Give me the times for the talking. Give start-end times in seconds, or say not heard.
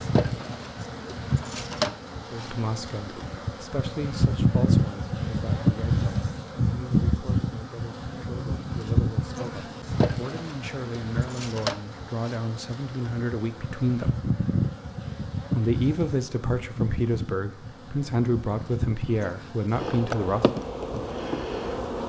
2.3-14.1, 15.5-20.4.